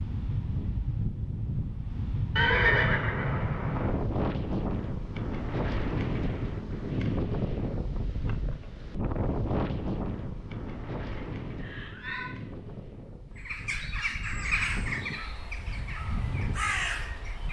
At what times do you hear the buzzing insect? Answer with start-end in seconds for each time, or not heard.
not heard.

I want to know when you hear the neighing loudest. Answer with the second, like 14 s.
3 s.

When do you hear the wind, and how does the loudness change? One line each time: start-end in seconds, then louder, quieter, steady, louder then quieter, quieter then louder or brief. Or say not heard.
0.0-17.4 quieter.